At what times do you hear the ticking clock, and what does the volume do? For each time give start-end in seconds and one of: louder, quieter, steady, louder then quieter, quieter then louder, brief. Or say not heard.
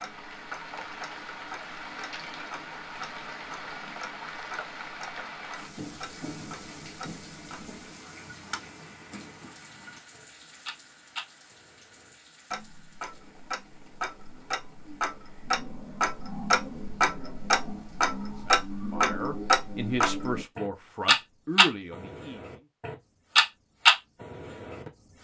0.0-25.2 louder.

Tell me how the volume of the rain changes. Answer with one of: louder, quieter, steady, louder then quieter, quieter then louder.
quieter.